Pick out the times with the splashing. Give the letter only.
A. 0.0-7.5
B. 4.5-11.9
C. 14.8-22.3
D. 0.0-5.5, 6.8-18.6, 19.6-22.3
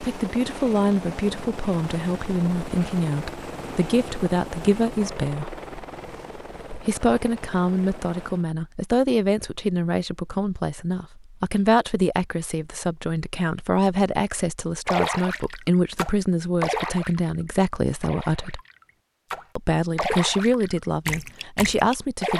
C.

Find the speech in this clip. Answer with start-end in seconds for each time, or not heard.
0.0-5.5, 6.8-18.6, 19.6-22.3.